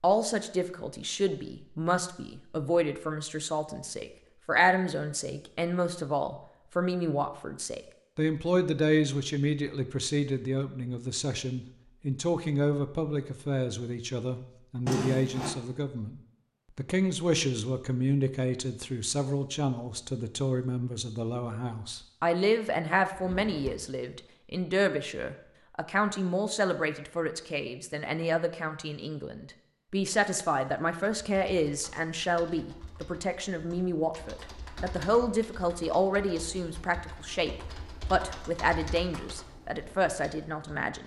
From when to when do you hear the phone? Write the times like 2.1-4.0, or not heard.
not heard.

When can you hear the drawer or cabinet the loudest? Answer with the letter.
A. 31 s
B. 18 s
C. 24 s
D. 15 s
D.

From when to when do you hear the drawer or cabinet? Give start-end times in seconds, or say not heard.
14.8-15.6, 23.1-23.9.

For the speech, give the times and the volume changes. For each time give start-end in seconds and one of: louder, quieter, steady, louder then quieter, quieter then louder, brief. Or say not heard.
0.0-41.0 steady.